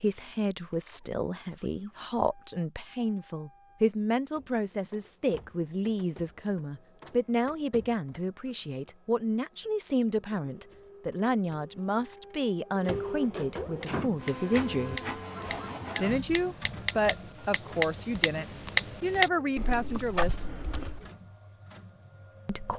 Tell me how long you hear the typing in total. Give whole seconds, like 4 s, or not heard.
7 s.